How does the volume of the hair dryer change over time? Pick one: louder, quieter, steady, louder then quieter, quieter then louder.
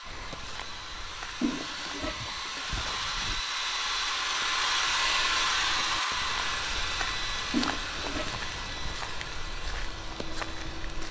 louder then quieter.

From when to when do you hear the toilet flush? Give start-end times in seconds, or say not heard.
1.4-3.4, 7.5-9.1.